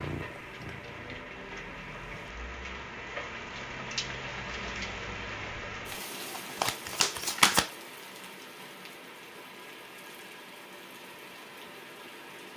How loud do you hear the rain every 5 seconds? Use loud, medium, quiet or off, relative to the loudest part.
loud, loud, medium.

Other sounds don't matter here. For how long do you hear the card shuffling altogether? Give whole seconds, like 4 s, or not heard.
2 s.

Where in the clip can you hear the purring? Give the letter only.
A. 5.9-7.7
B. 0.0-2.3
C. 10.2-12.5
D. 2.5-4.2
B.